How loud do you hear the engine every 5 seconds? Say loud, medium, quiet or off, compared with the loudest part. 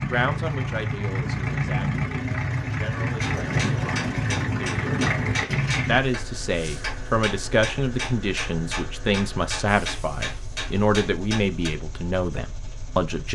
loud, medium, quiet.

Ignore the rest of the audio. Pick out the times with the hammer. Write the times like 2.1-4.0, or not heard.
3.2-11.7.